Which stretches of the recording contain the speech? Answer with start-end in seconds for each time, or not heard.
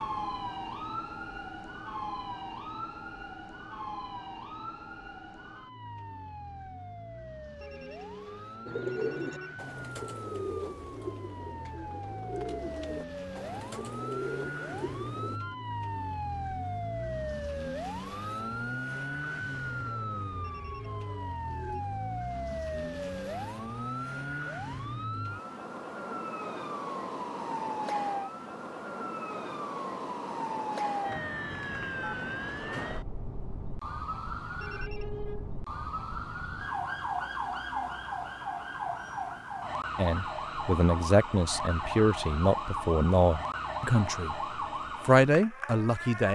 40.0-44.4, 45.0-46.3.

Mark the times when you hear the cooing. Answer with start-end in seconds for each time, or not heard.
8.7-15.4.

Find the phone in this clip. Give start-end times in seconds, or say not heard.
7.6-9.6, 20.4-21.9, 34.6-35.5.